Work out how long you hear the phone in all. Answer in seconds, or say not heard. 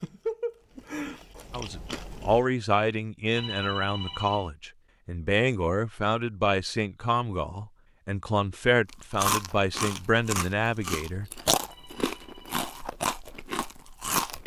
2 s.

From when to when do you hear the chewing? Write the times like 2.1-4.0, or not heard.
0.0-2.5, 8.8-14.4.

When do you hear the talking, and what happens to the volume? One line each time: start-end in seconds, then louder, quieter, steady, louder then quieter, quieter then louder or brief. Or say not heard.
1.5-11.3 steady.